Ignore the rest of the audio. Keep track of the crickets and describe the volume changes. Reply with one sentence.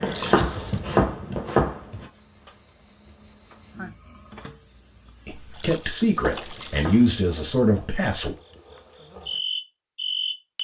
The loudness of the crickets goes up.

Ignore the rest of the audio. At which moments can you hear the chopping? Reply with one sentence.
The chopping can be heard from 0.0 to 2.0 s and from 6.2 to 8.0 s.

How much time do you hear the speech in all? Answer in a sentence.
The speech can be heard for 3 seconds in total.